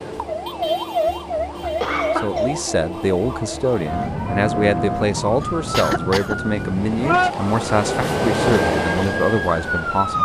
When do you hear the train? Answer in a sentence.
The train can be heard from 0.0 to 10.1 s.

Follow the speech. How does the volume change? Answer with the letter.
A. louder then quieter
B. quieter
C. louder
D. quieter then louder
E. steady
E.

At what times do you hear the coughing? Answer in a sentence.
The coughing can be heard from 1.6 to 2.5 s and from 5.4 to 6.3 s.